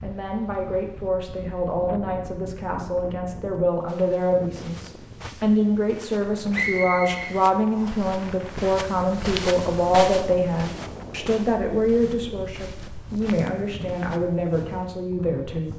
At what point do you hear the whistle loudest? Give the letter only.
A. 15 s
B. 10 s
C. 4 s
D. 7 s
D.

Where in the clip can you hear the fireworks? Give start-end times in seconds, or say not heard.
not heard.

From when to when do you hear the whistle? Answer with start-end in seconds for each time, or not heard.
6.5-8.1.